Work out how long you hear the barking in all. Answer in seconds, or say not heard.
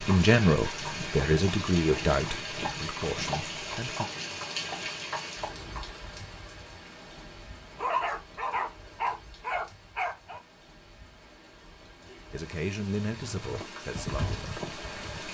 3 s.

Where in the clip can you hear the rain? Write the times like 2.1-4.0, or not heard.
0.0-15.2.